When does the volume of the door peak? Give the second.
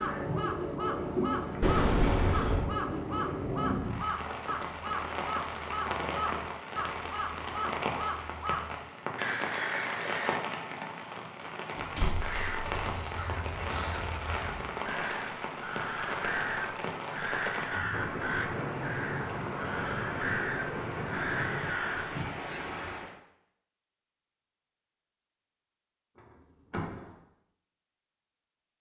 2 s.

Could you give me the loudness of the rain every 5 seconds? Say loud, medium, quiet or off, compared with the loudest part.
loud, loud, loud, loud, loud, off.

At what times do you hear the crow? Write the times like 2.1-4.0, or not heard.
0.0-10.4, 12.2-22.1.